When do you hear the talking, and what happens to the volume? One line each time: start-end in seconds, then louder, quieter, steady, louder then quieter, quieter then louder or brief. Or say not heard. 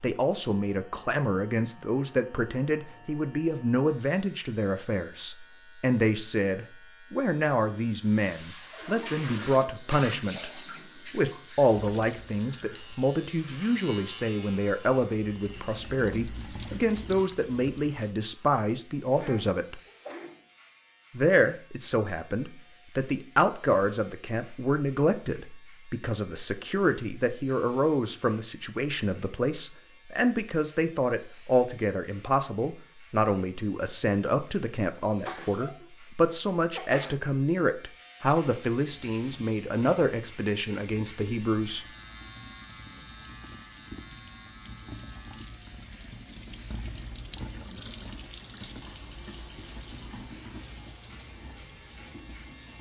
0.0-19.8 steady
21.1-41.9 steady.